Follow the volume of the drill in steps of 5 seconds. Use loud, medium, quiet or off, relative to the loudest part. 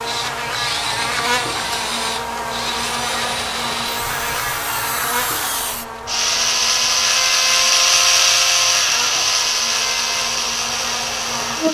medium, loud, medium.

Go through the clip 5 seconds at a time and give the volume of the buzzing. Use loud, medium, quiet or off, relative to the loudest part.
loud, medium, loud.